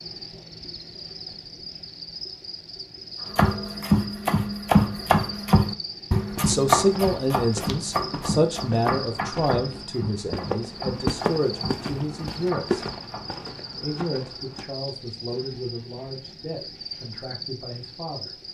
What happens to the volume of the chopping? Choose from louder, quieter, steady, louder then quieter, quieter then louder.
quieter.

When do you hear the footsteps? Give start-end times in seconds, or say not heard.
6.2-14.7.